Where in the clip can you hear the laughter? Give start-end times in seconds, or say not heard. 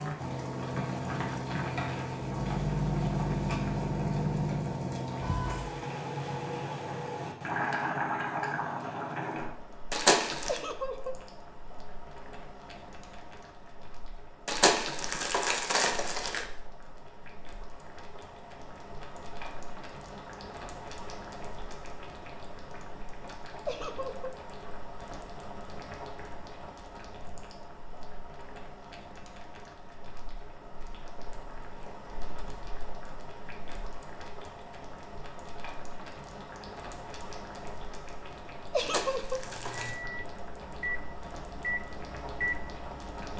10.4-11.2, 23.6-24.4, 38.7-39.5.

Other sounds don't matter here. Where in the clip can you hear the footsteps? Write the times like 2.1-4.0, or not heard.
not heard.